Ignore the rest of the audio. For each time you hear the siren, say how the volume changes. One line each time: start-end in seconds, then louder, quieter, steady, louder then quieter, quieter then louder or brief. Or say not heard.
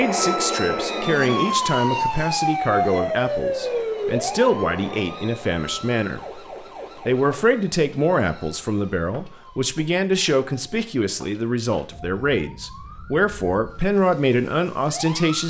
0.0-15.4 quieter.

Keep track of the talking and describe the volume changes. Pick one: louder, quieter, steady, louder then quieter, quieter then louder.
steady.